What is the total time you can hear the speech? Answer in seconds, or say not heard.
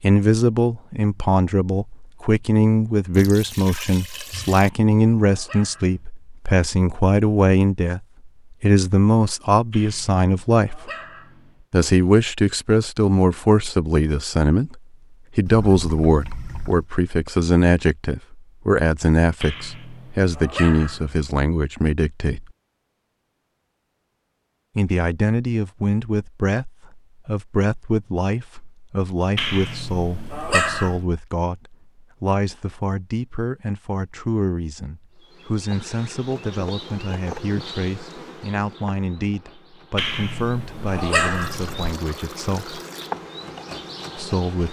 40 s.